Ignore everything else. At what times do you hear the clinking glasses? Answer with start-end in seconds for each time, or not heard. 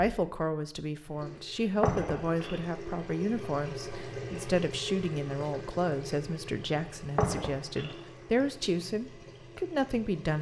1.8-2.6, 7.2-8.0.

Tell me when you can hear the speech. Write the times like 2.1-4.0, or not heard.
0.0-10.3.